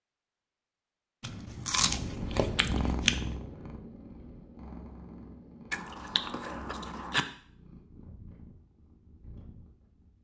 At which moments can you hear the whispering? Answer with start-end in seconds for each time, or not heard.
not heard.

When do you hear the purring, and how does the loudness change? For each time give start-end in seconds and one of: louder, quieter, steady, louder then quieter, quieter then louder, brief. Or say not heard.
1.8-10.1 quieter.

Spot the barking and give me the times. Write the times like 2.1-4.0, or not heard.
not heard.